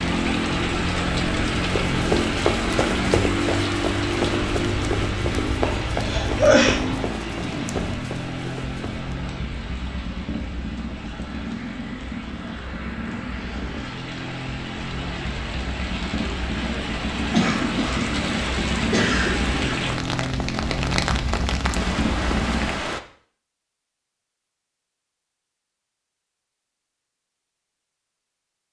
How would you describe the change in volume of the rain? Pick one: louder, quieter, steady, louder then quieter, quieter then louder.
quieter then louder.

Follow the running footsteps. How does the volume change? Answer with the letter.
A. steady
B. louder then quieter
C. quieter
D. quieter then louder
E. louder
C.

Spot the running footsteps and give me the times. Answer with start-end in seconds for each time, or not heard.
1.6-9.0.